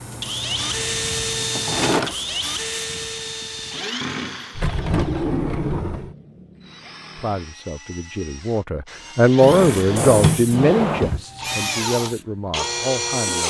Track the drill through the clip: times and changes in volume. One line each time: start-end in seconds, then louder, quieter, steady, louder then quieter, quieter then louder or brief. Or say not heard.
0.0-13.4 quieter then louder.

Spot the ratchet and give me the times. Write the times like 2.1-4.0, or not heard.
not heard.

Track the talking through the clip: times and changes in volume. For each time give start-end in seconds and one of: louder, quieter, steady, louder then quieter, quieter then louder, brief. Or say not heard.
7.2-13.4 louder then quieter.